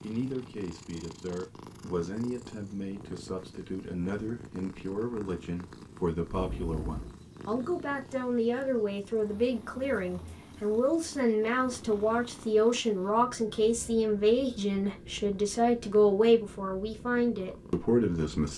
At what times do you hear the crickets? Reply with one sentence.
You can't hear the crickets here.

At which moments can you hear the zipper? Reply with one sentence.
You can hear the zipper from 6.3 to 7.2 s.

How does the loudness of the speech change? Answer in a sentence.
The loudness of the speech goes up.